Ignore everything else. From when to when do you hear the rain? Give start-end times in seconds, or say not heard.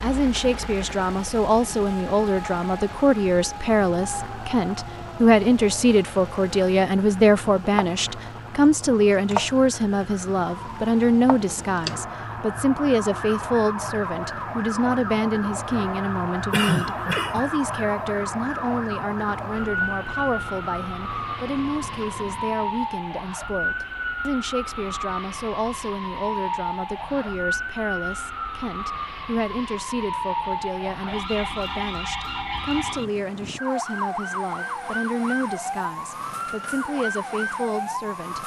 not heard.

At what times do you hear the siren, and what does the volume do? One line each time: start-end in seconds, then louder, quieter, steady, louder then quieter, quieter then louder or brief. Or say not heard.
0.0-38.4 louder.